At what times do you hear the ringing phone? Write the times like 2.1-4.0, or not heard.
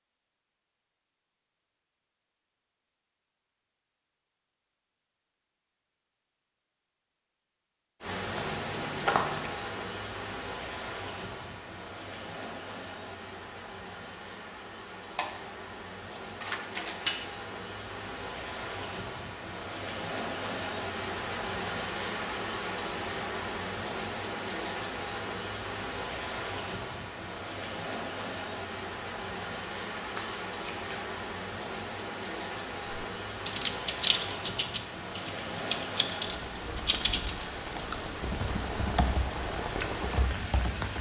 not heard.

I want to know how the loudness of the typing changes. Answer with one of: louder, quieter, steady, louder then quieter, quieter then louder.
quieter.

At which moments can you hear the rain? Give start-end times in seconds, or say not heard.
8.0-40.9.